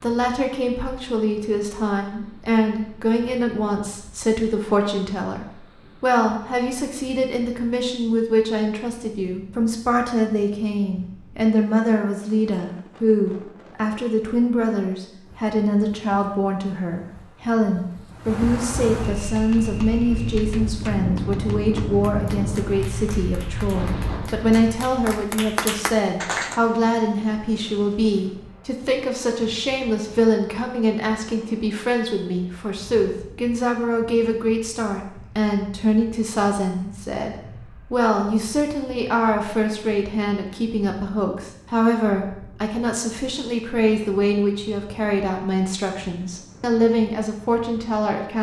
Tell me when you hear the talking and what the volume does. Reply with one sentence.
The talking can be heard from 0.0 to 48.3 s, at a steady volume.